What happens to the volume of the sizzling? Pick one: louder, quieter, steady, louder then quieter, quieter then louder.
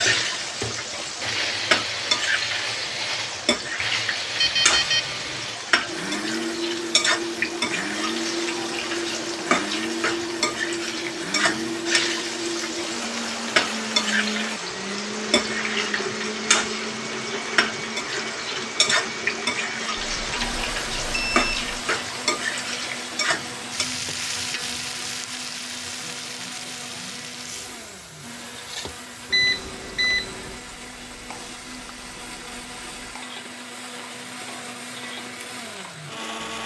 quieter.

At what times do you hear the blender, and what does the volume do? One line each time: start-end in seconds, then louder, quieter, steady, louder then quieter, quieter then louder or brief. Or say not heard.
0.0-36.6 quieter.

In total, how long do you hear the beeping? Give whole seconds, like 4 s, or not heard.
4 s.